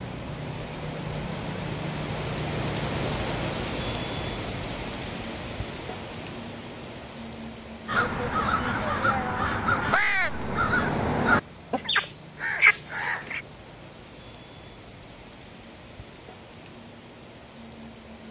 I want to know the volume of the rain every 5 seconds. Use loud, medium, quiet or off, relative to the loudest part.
loud, medium, quiet, quiet.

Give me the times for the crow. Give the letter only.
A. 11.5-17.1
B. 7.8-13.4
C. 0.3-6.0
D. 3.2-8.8
B.